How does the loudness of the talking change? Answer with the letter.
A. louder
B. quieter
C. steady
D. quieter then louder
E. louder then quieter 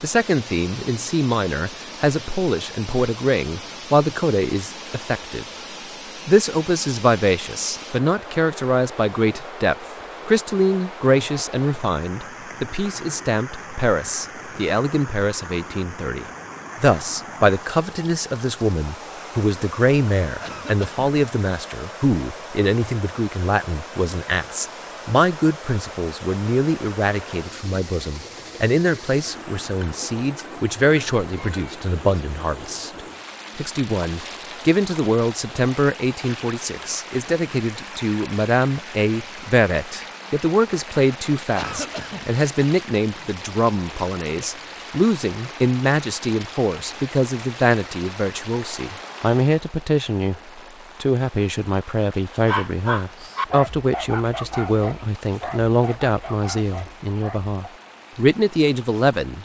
C.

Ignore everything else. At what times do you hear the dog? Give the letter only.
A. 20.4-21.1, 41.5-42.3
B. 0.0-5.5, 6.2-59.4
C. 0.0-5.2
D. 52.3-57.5
D.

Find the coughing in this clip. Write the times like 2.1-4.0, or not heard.
20.4-21.1, 41.5-42.3.